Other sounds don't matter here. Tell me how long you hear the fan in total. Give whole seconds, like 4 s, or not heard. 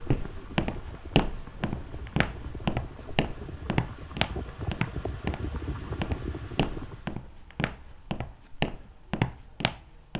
7 s.